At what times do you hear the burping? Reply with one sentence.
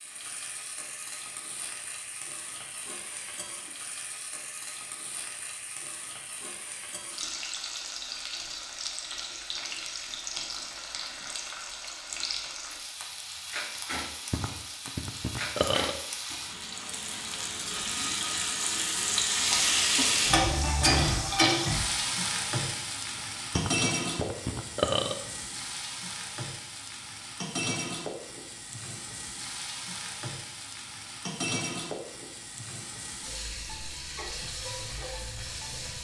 The burping can be heard from 14.3 to 15.9 s and from 23.1 to 25.1 s.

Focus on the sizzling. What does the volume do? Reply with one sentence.
The volume of the sizzling goes up, then down.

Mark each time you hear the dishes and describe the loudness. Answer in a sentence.
You can't hear the dishes here.